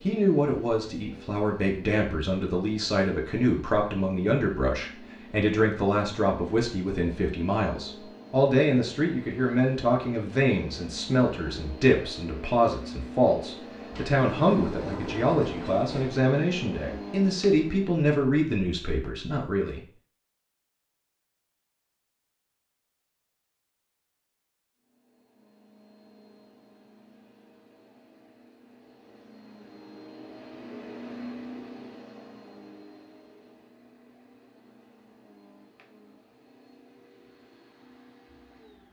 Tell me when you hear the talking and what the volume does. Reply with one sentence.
The talking can be heard from 0.0 to 19.8 s, at a steady volume.